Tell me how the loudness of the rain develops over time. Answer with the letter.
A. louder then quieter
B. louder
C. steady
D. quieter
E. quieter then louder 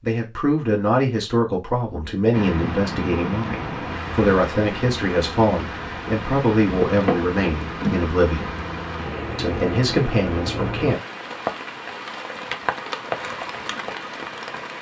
C.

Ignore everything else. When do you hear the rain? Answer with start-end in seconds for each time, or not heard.
2.3-14.7.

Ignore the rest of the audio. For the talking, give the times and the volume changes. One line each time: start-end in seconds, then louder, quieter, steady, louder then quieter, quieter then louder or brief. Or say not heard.
0.0-8.6 steady
9.3-11.0 brief.